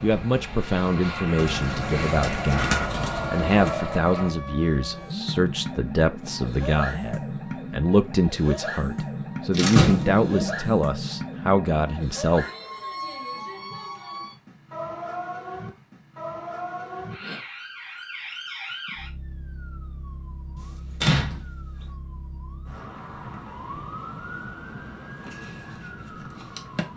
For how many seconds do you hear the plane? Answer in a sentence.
You can hear the plane for 4 seconds altogether.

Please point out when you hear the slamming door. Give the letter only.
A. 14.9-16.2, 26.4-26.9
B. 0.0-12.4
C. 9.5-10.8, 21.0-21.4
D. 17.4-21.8
C.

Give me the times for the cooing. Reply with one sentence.
You can hear the cooing from 1.4 to 3.8 s.